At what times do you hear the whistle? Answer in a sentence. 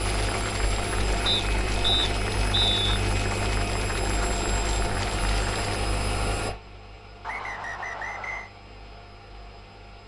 You can hear the whistle from 1.2 to 2.9 s and from 7.2 to 8.5 s.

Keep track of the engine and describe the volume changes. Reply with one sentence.
The loudness of the engine goes down.